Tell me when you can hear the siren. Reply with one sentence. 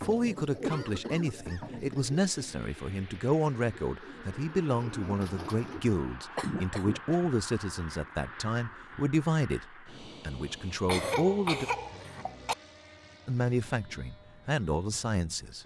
The siren can't be heard in this clip.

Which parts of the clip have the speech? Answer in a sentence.
You can hear the speech from 0.0 to 11.7 s and from 13.2 to 15.6 s.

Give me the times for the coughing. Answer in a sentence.
You can hear the coughing from 0.6 to 2.0 s, from 6.3 to 7.2 s and from 10.8 to 12.6 s.